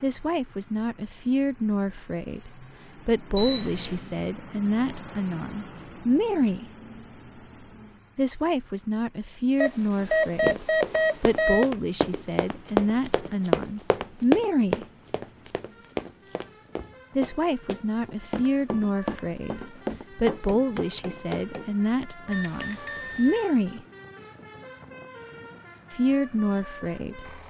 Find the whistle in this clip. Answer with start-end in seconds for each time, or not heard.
not heard.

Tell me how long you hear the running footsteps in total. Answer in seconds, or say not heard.
11 s.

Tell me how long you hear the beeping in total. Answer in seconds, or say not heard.
4 s.